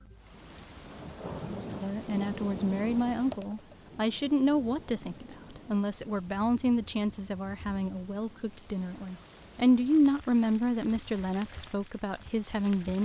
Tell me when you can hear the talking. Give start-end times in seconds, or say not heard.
1.8-13.0.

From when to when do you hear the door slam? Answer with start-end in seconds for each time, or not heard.
not heard.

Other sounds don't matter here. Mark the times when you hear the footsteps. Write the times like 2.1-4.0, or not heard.
not heard.